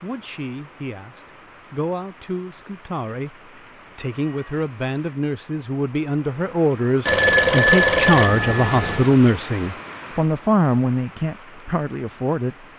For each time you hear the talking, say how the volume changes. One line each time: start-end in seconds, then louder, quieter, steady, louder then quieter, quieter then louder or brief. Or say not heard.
0.0-12.7 louder.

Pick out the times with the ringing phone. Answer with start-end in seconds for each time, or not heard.
4.0-4.7, 7.0-9.2.